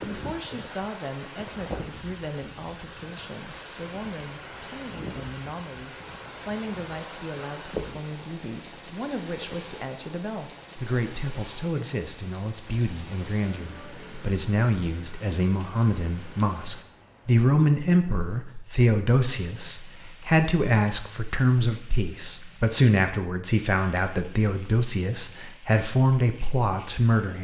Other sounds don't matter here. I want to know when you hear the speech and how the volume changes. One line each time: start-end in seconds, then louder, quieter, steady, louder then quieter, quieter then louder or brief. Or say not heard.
0.0-27.3 louder.